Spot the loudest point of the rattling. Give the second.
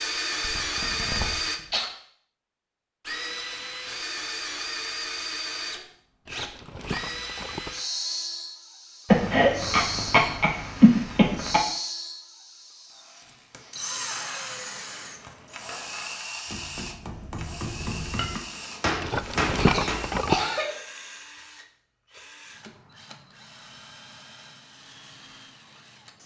20 s.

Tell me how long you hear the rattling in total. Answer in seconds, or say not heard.
3 s.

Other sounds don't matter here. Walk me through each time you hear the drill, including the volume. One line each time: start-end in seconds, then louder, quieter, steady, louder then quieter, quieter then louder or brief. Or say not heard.
0.0-1.6 brief
3.0-26.2 quieter.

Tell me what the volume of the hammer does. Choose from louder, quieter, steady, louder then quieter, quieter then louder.
louder.